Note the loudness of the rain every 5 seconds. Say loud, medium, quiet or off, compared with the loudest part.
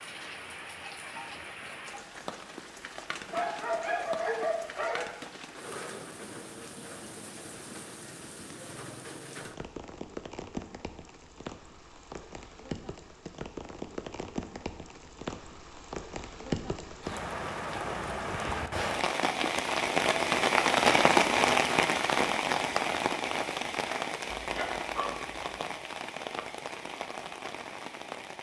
quiet, quiet, quiet, medium, loud, quiet.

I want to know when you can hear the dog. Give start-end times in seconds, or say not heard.
3.2-5.0, 24.4-25.6.